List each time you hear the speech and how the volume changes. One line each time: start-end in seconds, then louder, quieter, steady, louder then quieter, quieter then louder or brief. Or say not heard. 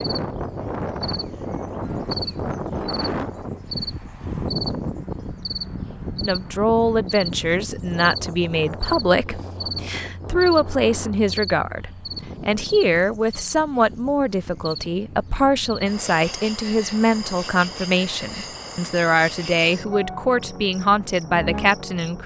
6.2-22.2 steady.